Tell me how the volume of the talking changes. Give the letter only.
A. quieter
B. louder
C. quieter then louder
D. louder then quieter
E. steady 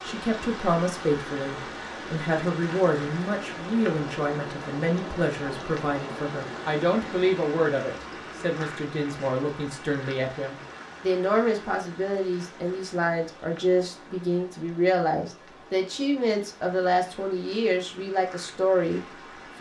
E.